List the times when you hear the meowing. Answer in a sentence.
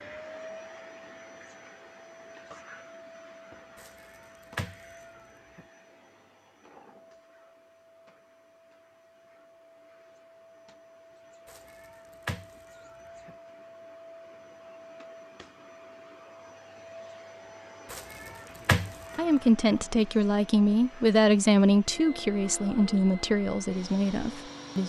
You can hear the meowing from 3.8 to 5.7 s, from 11.4 to 13.3 s and from 17.9 to 19.8 s.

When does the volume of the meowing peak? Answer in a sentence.
The volume of the meowing peaks at 19 seconds.